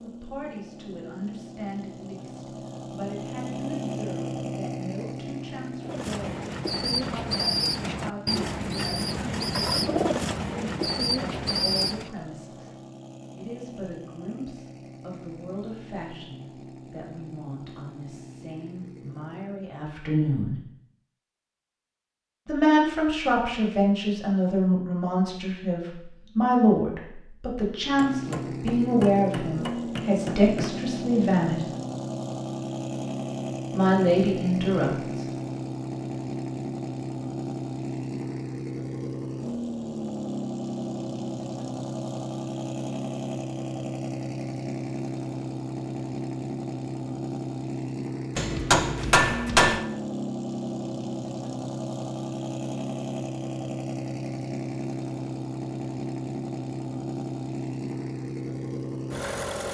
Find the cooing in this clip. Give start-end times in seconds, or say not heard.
5.8-12.1.